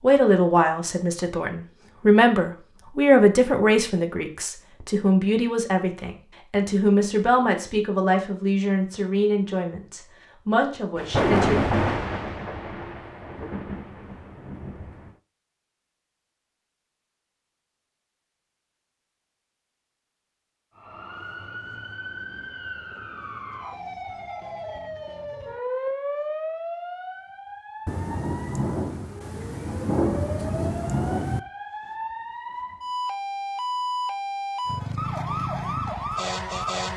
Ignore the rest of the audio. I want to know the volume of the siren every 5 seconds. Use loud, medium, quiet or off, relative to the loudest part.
off, off, off, off, medium, medium, loud, loud.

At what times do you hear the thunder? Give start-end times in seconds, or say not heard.
10.9-15.1, 27.9-31.4.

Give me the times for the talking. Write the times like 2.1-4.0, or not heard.
0.0-11.6.